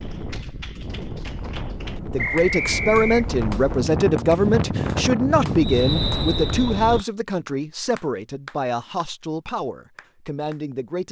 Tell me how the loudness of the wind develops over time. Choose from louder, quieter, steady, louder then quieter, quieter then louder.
louder.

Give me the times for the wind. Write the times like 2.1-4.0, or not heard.
0.0-7.0.